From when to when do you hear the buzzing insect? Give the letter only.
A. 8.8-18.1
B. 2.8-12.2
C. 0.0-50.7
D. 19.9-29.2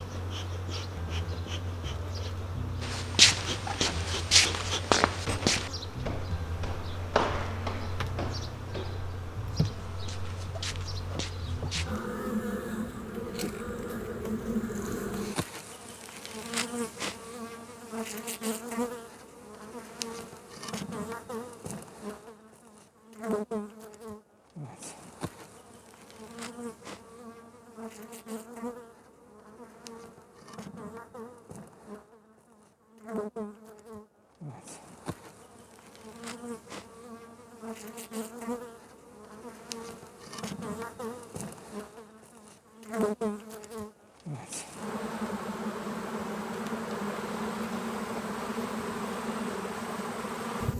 C.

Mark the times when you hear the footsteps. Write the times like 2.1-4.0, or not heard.
2.8-12.2.